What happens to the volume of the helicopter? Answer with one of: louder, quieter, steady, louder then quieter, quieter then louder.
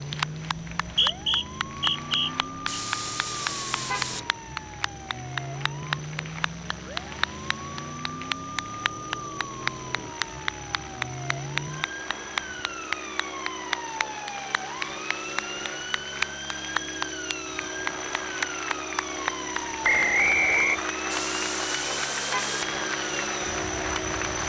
louder.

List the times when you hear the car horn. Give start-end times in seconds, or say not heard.
2.6-4.3, 21.1-22.8.